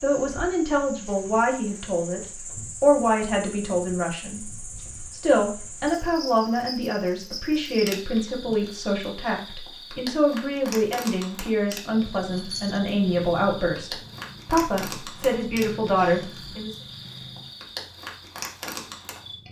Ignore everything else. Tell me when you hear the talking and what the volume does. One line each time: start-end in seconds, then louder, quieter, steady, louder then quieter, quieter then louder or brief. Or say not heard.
0.0-16.8 steady.